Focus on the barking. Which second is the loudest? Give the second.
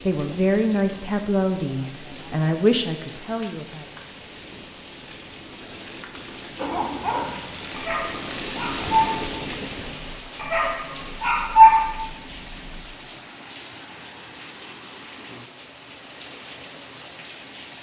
12 s.